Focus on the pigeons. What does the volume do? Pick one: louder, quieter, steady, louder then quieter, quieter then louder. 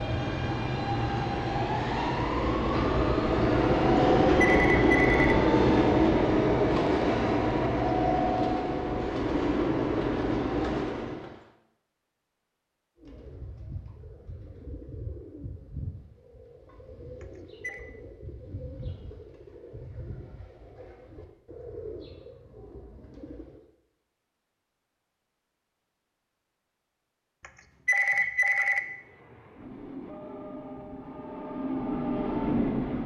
steady.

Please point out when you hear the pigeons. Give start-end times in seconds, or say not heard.
12.9-23.6.